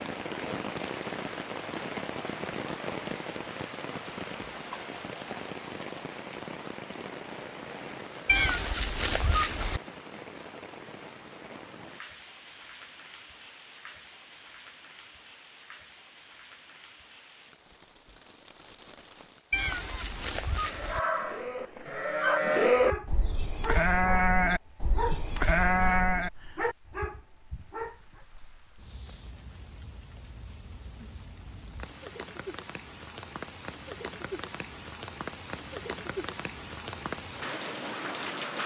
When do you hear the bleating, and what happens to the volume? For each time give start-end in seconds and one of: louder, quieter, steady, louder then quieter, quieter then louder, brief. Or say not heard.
19.7-26.3 louder.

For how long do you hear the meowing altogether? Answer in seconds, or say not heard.
3 s.